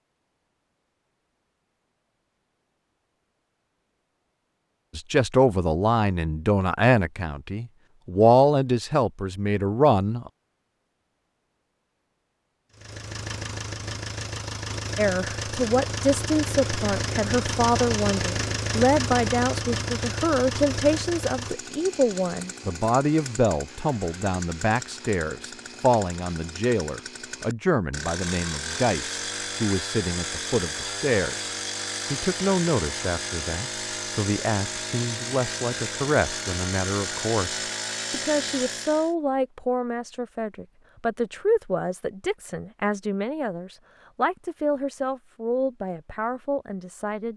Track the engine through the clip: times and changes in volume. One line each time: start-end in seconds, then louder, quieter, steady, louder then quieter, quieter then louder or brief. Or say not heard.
12.7-39.1 quieter then louder.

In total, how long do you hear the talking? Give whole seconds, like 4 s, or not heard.
38 s.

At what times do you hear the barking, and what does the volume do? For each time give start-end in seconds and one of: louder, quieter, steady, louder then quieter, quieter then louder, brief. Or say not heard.
not heard.